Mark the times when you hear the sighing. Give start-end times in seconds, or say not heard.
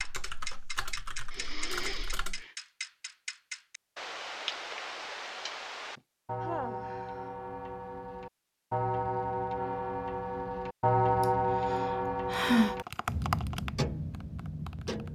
1.3-2.5, 6.0-7.3, 11.2-12.8.